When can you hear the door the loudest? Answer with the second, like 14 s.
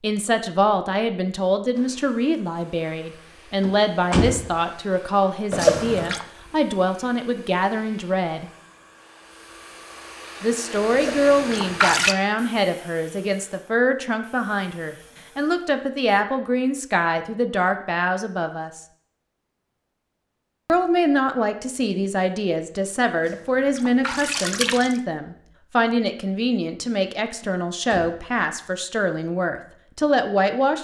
4 s.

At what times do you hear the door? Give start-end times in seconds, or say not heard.
3.6-4.5, 27.4-28.2.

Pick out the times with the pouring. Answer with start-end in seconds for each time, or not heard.
5.5-6.2, 10.9-12.2, 23.3-24.9.